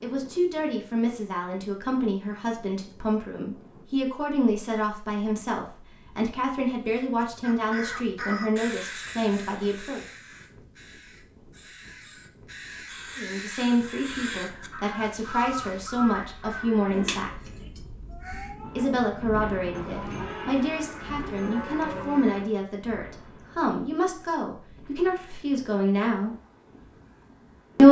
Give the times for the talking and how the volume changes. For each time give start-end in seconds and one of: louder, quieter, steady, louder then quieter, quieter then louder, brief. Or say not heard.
0.0-10.0 steady
13.2-17.5 quieter then louder
18.8-26.4 steady.